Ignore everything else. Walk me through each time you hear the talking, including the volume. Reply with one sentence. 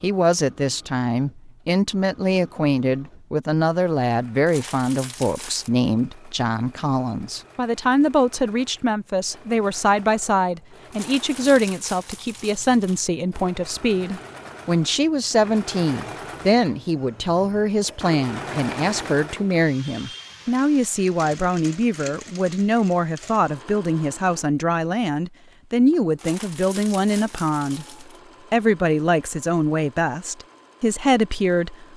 The talking can be heard from 0.0 to 31.9 s, at a steady volume.